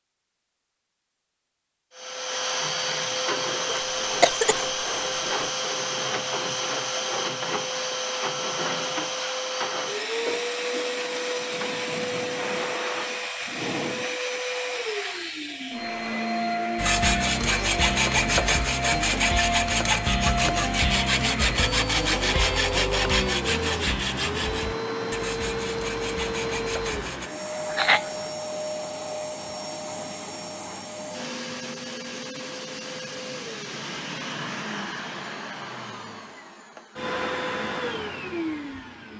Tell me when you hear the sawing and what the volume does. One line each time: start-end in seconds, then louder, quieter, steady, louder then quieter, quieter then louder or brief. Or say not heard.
16.8-27.3 quieter.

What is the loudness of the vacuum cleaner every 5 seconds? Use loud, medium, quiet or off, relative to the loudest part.
loud, loud, loud, loud, loud, loud, medium, medium.